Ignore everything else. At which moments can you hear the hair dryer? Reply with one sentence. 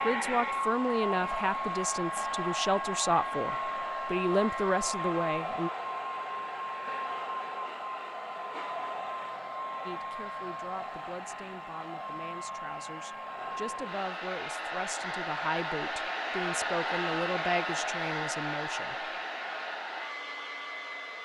You can hear the hair dryer from 0.0 to 21.1 s.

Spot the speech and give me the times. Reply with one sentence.
The speech can be heard from 0.0 to 5.7 s and from 9.8 to 18.9 s.